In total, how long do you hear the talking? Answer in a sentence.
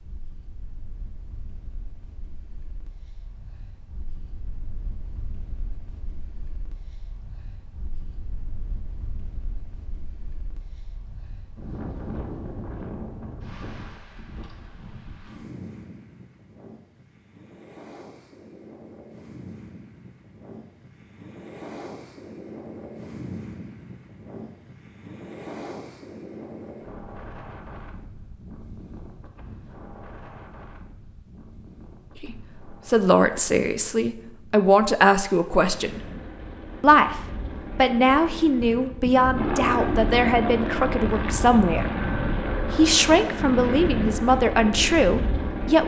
You can hear the talking for 13 seconds altogether.